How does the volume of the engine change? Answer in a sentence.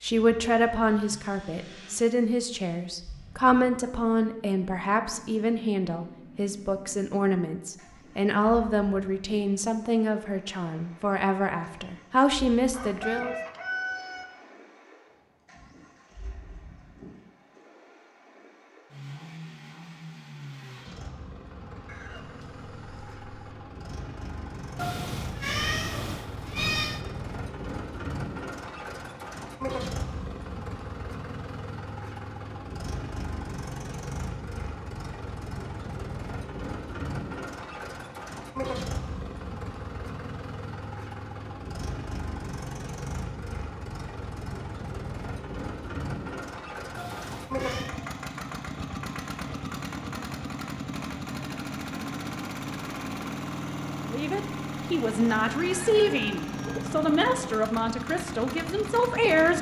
The loudness of the engine goes up.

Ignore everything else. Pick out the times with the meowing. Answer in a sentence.
The meowing can be heard from 24.8 to 27.0 s and from 47.0 to 48.0 s.